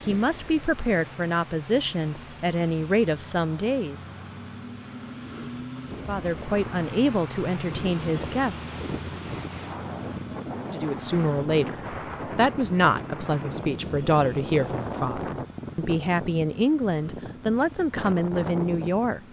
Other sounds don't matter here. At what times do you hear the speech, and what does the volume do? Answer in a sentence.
You can hear the speech from 0.1 to 4.0 s, at a steady volume; briefly from 6.0 to 8.7 s; and from 10.7 to 19.2 s, at a steady volume.